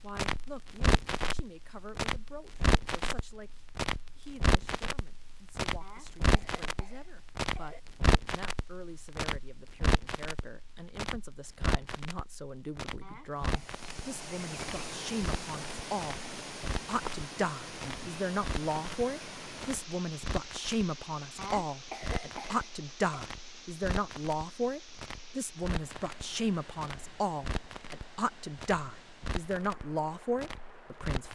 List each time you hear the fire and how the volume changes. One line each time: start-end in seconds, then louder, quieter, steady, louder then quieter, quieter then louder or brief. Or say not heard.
0.0-31.3 quieter.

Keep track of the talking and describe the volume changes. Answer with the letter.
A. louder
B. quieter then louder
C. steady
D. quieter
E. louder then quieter
A.